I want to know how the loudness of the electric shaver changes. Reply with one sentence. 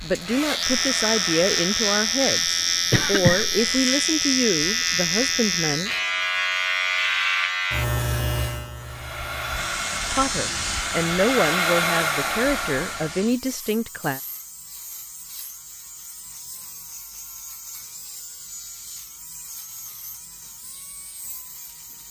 The loudness of the electric shaver goes down.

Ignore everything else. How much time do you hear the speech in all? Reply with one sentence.
The speech can be heard for 10 seconds in total.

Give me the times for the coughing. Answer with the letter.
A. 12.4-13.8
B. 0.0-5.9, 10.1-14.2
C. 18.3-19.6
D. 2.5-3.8
D.